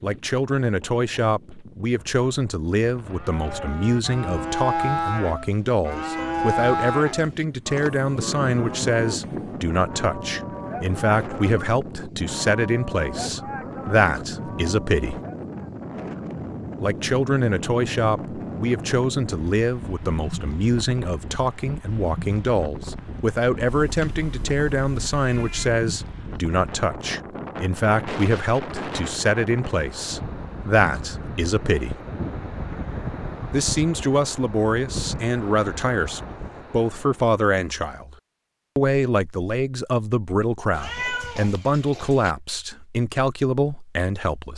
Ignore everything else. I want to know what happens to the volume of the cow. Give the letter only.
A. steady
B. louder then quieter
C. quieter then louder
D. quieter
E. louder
D.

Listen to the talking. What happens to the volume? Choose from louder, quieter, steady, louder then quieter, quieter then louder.
steady.